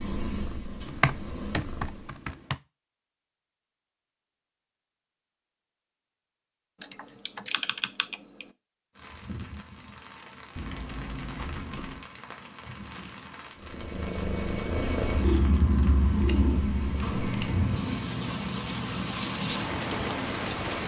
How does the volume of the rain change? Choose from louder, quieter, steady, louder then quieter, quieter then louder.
louder.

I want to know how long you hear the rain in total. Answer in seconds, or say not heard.
12 s.